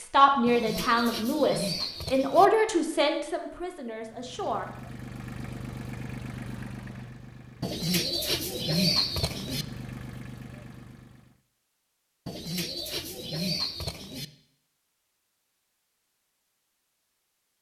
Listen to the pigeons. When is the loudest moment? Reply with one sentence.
The loudest moment of the pigeons is at 9 seconds.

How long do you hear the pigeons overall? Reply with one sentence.
You can hear the pigeons for 6 seconds altogether.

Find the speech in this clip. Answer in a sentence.
The speech can be heard from 0.0 to 4.7 s.